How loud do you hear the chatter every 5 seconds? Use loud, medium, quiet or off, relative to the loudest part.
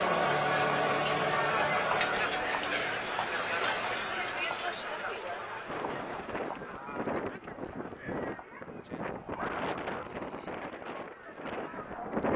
loud, quiet, quiet.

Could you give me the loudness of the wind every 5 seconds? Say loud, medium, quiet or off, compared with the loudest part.
off, loud, loud.